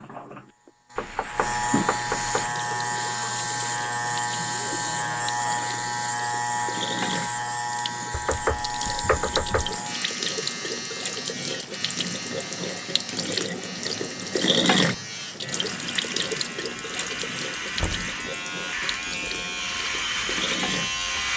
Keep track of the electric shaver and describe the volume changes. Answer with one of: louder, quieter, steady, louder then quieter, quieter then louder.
quieter then louder.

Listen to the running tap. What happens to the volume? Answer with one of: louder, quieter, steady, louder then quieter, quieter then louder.
louder then quieter.